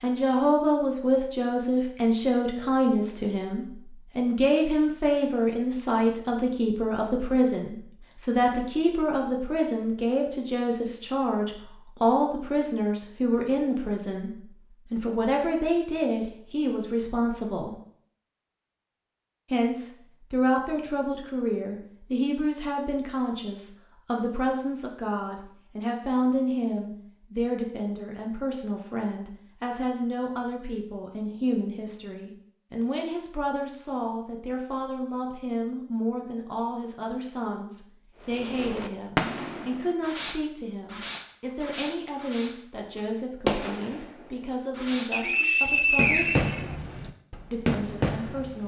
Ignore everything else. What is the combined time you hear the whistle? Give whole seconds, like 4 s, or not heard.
2 s.